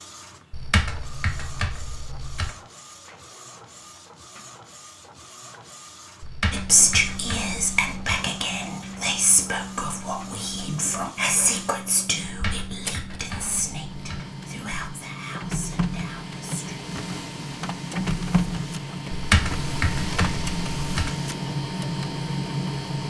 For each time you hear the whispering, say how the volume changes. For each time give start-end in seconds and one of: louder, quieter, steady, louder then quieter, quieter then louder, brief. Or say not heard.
6.5-16.8 quieter.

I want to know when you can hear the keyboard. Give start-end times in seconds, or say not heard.
0.5-2.5, 6.2-8.2, 12.2-14.2, 19.1-21.1.